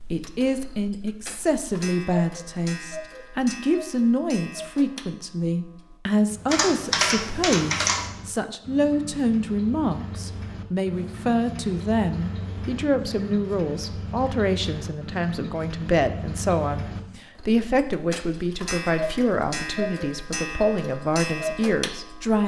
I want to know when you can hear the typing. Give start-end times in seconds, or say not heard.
6.5-8.1.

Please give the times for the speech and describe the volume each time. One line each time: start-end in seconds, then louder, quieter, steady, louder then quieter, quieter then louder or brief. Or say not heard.
0.1-22.4 steady.